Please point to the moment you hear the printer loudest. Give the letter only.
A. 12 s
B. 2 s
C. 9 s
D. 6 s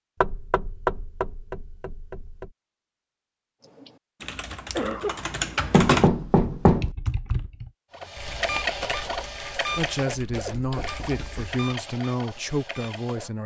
C.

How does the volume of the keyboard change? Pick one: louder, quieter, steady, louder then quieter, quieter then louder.
louder then quieter.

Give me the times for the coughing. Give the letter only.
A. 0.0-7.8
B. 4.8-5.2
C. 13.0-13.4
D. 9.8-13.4
B.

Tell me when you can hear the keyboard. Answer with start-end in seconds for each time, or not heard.
3.6-11.4.